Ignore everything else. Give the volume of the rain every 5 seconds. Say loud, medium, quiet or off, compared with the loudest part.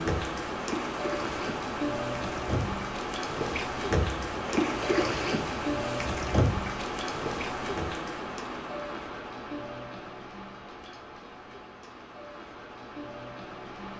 loud, loud, medium.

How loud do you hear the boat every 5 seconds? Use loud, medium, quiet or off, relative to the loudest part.
loud, loud, off.